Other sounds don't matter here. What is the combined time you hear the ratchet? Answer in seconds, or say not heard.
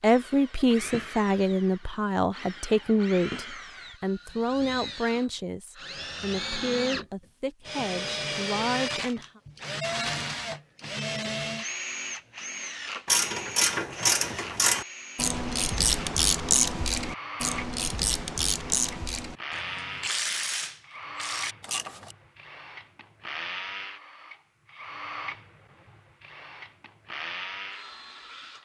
9 s.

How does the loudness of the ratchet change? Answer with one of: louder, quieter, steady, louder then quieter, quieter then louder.
quieter.